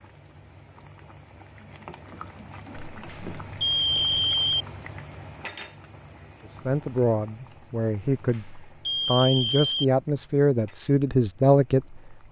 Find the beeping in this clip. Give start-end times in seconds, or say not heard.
3.0-4.7, 8.2-9.8.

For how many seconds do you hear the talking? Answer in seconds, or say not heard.
6 s.